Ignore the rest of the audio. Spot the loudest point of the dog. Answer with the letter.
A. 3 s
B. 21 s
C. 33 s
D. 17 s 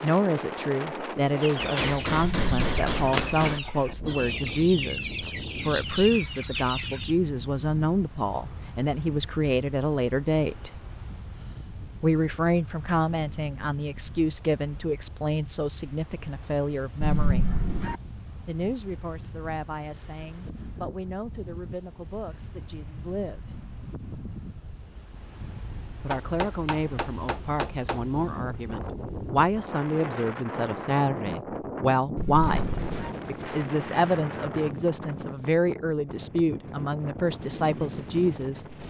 D.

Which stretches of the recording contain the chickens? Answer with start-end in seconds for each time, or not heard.
1.4-7.2.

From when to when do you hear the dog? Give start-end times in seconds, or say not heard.
2.2-3.0, 17.0-18.0, 32.1-33.1.